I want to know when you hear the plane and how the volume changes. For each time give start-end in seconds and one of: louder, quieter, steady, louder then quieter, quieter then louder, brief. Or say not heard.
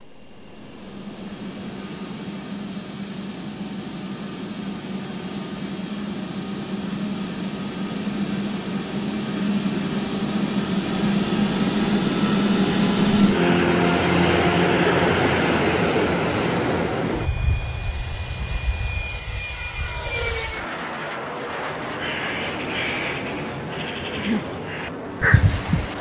0.0-25.9 louder then quieter.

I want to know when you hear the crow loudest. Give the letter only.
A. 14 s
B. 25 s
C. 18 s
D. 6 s
B.